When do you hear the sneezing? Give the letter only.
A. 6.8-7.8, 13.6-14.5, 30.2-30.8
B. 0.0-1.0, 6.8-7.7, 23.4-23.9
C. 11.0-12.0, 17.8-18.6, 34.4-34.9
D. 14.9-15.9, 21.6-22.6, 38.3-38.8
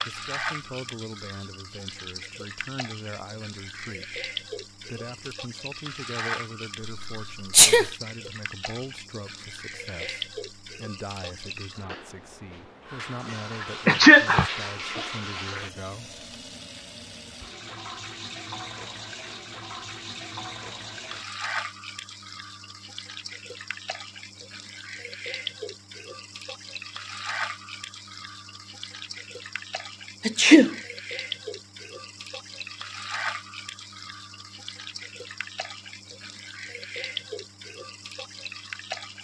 A.